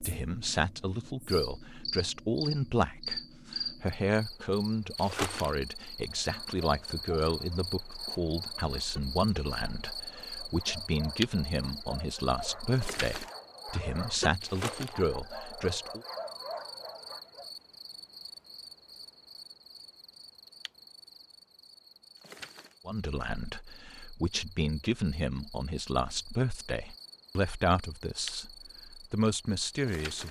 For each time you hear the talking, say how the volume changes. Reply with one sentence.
The talking can be heard from 0.0 to 16.0 s, at a steady volume; and from 22.9 to 30.2 s, getting louder.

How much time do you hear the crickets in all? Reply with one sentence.
You can hear the crickets for 30 seconds altogether.